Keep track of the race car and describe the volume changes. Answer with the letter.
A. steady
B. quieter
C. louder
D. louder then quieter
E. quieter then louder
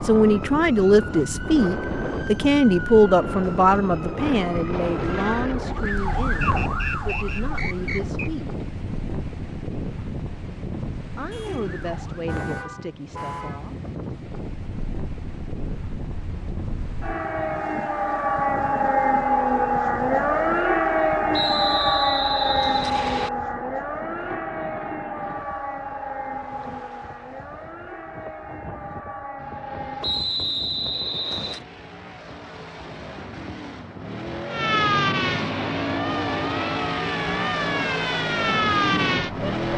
C.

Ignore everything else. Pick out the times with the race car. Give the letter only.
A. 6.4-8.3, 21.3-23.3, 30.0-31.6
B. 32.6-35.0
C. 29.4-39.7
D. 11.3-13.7
C.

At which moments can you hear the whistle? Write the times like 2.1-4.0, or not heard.
6.4-8.3, 21.3-23.3, 30.0-31.6.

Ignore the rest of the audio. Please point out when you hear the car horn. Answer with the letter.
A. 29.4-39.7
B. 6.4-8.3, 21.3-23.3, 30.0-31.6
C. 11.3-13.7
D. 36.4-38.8
C.